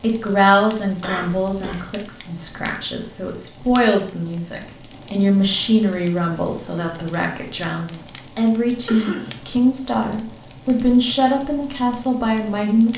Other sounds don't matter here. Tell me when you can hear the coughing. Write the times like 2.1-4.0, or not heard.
1.0-1.9, 8.8-9.4.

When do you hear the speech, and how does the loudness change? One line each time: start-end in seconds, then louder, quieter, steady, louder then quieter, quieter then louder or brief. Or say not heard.
0.0-12.9 steady.